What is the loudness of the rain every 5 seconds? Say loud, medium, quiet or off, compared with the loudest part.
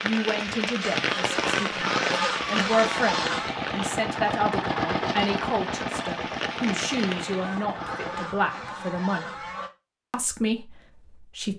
loud, medium, off.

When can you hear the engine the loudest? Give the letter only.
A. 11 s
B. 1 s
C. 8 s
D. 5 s
D.